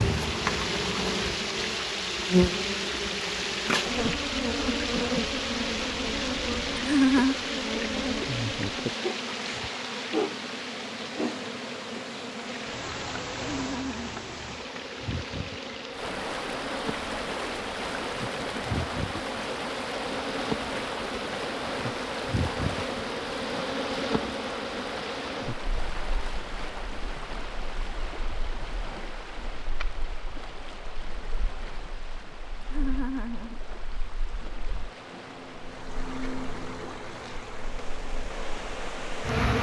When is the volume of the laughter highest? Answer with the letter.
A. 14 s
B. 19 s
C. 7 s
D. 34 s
C.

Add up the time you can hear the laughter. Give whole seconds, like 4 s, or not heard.
2 s.